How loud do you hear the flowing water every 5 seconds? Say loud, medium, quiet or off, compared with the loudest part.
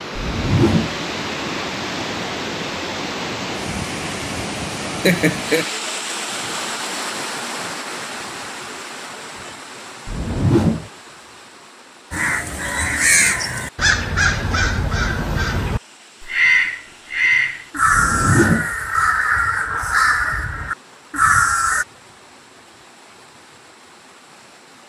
loud, loud, quiet, quiet, quiet.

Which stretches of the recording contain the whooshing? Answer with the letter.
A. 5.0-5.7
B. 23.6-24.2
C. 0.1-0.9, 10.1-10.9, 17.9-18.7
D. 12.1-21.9
C.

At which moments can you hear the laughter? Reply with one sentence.
You can hear the laughter from 5.0 to 5.7 s.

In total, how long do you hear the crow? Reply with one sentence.
You can hear the crow for 10 seconds altogether.